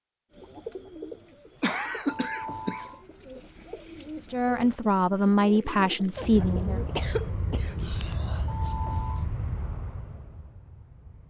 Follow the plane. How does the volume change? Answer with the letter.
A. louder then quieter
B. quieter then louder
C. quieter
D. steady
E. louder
C.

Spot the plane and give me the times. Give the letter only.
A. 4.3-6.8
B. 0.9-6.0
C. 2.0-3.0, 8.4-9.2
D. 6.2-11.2
D.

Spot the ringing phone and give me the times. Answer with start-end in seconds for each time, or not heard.
2.0-3.0, 8.4-9.2.